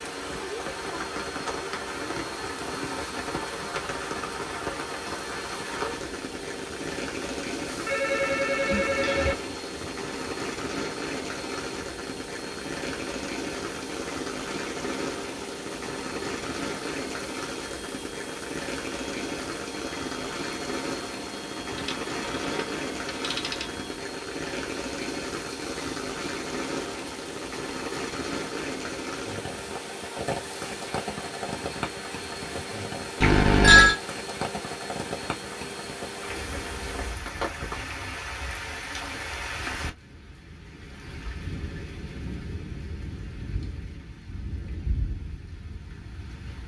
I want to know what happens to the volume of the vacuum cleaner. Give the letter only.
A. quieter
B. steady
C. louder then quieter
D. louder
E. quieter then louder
B.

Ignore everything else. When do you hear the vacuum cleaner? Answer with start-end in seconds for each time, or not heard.
0.0-37.2.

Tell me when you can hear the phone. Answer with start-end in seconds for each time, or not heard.
7.8-9.3, 21.8-23.6, 33.2-34.0.